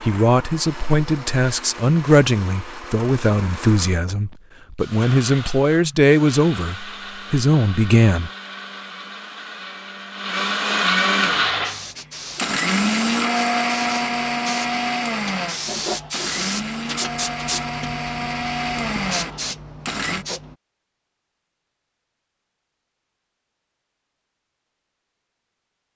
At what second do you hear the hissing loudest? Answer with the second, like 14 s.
16 s.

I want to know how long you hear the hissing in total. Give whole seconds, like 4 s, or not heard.
9 s.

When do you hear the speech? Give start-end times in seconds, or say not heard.
0.0-8.3.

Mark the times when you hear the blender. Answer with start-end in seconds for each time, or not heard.
0.0-20.2.